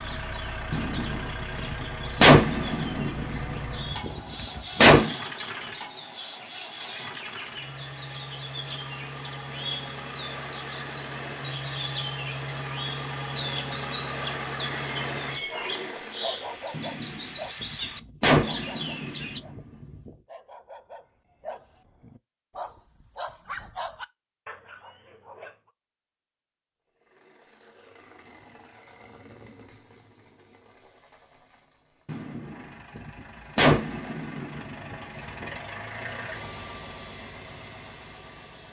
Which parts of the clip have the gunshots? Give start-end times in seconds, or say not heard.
0.7-5.2, 16.7-20.1, 32.0-35.6.